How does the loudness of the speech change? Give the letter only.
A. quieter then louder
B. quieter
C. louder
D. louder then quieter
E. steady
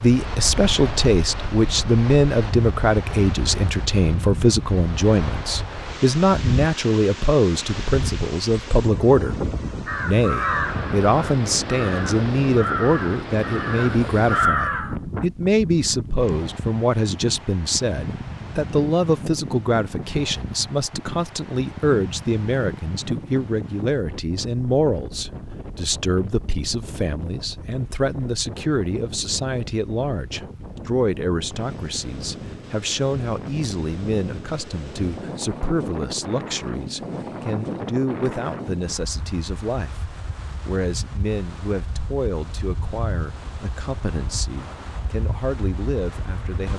B.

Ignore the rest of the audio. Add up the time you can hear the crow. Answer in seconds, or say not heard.
5 s.